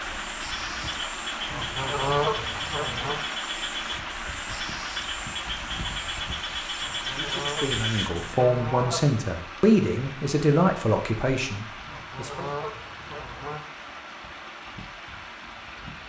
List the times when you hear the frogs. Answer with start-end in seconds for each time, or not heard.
0.0-8.4.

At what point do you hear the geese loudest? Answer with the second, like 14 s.
2 s.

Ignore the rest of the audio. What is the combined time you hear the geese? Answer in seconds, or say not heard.
6 s.